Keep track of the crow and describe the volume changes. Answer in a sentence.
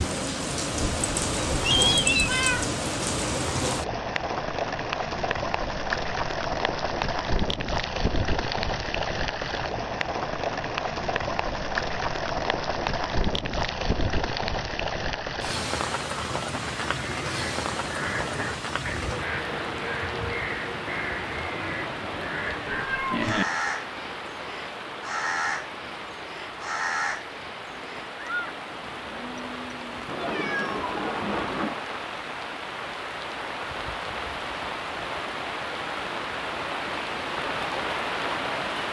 The loudness of the crow stays about the same.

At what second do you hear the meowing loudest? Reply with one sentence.
The loudest moment of the meowing is at 2 seconds.